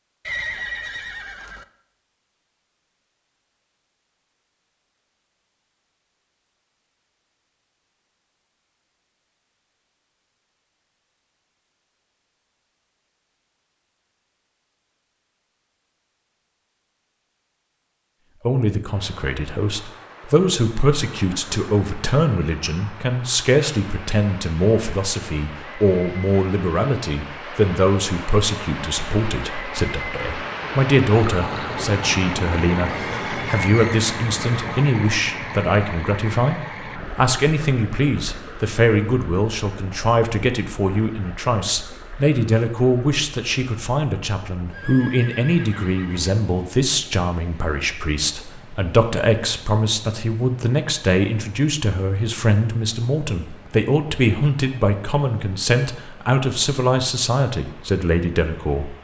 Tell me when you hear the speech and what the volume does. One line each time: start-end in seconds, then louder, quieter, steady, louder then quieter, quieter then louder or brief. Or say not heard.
18.4-58.9 steady.